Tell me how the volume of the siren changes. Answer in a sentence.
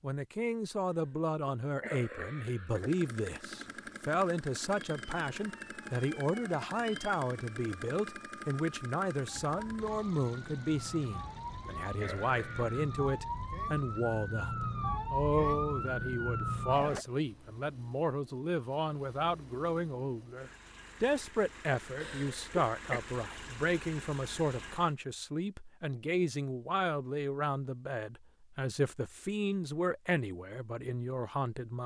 The loudness of the siren goes up.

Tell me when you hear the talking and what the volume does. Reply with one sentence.
You can hear the talking from 0.0 to 31.8 s, at a steady volume.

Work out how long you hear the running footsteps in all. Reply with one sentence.
The running footsteps can't be heard in this clip.